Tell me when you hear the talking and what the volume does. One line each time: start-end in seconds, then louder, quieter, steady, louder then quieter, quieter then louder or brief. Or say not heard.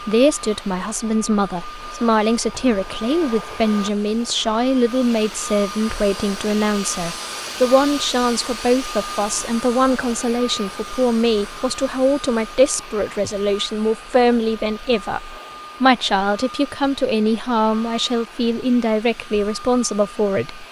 0.0-20.6 steady.